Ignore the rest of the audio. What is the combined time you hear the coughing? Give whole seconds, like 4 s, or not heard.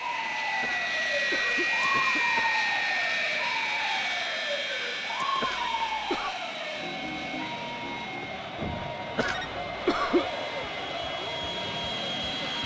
4 s.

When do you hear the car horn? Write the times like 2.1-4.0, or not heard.
not heard.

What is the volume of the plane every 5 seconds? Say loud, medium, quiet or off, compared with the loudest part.
loud, medium, medium.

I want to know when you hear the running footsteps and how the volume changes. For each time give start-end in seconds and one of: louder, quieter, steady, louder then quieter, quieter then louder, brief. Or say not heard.
not heard.